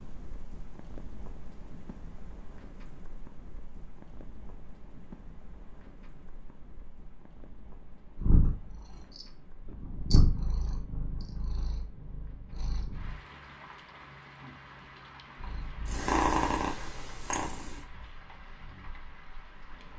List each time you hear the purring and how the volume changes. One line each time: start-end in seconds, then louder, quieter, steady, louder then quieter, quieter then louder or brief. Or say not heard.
8.2-13.2 louder then quieter
15.3-19.9 quieter.